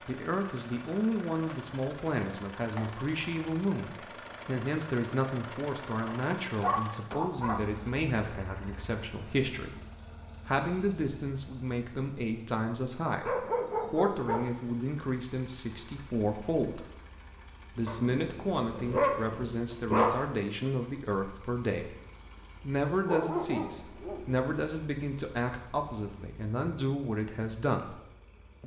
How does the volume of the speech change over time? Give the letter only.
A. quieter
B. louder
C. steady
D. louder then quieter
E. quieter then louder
C.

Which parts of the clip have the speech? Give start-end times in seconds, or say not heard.
0.1-9.8, 10.4-16.9, 17.8-21.9, 22.6-27.9.